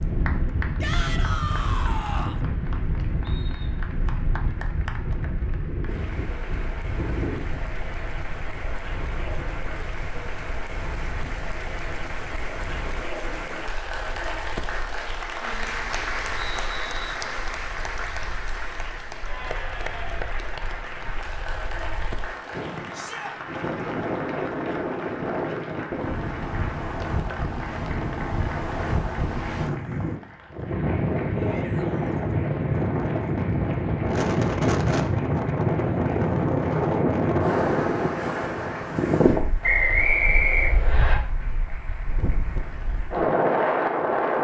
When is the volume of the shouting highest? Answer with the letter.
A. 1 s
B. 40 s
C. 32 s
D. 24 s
A.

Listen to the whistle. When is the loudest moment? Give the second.
40 s.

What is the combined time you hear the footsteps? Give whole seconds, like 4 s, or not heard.
not heard.